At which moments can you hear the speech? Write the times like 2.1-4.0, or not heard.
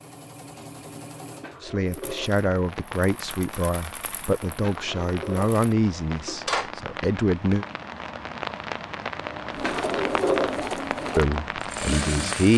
1.6-7.7, 11.2-12.5.